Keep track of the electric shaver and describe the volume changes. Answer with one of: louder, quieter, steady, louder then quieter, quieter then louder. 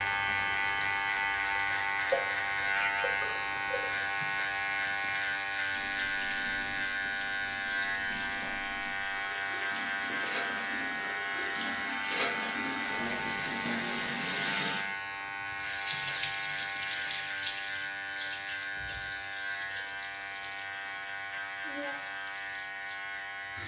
quieter.